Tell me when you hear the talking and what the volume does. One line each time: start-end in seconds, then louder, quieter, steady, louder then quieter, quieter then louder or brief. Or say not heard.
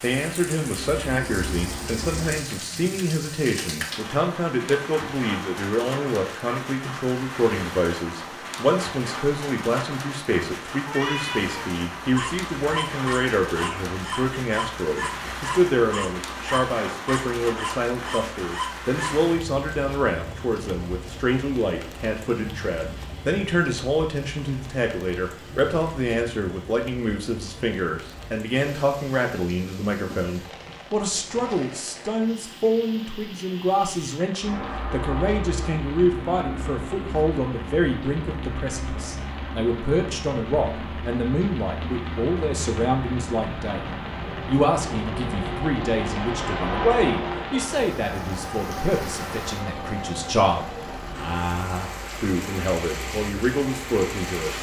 0.0-54.5 steady.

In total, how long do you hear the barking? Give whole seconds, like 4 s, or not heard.
7 s.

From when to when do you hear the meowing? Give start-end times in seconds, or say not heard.
10.8-11.7.